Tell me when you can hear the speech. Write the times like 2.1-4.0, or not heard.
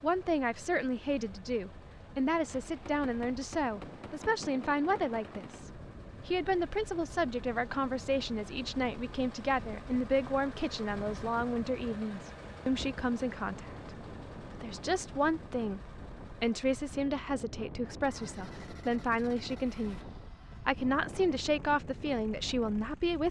0.0-13.9, 14.5-20.0, 20.6-23.2.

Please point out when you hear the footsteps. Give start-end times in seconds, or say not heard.
not heard.